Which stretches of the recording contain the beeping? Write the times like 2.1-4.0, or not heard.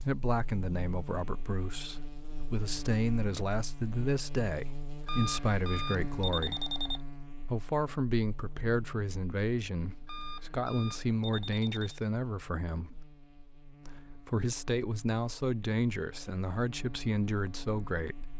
5.0-7.0, 10.1-12.0.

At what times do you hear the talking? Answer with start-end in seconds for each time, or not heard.
0.0-6.7, 7.5-13.1, 13.8-18.3.